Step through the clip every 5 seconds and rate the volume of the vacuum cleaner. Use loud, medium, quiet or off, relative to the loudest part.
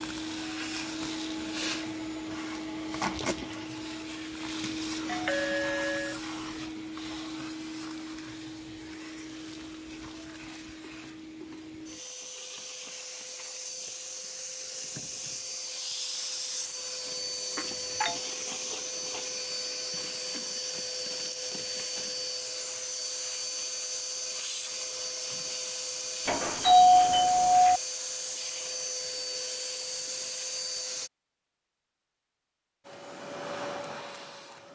loud, loud, medium, loud, loud, loud, loud.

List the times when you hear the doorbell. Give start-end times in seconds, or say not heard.
5.0-6.2, 17.6-18.1, 26.2-27.8.